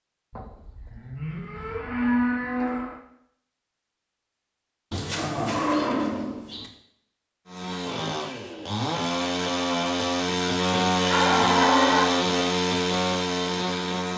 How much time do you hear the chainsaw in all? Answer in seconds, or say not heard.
7 s.